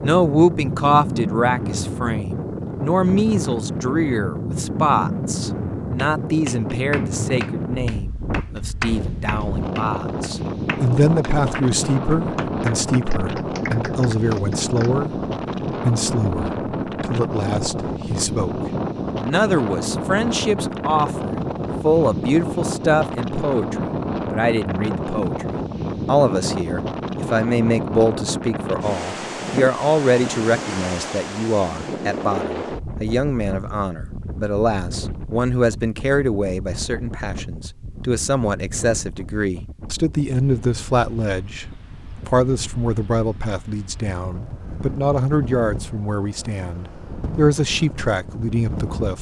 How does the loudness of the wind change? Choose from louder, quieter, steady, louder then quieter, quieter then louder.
quieter.